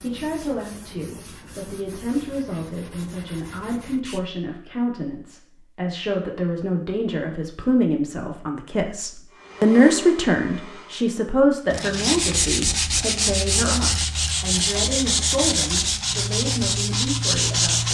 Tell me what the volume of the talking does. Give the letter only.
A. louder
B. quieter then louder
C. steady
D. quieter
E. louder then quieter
E.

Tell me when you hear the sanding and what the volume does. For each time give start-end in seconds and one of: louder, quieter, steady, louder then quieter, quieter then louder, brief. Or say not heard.
0.0-4.2 steady
11.7-17.8 steady.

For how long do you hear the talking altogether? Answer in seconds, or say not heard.
18 s.